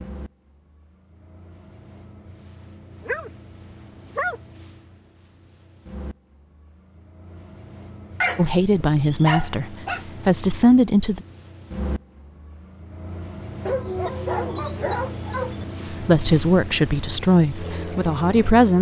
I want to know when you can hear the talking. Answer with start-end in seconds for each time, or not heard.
8.3-11.2, 15.9-18.7.